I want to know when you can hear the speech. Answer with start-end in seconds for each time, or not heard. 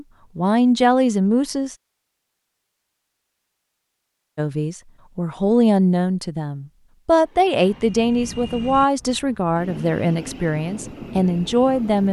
0.0-1.8, 4.3-12.0.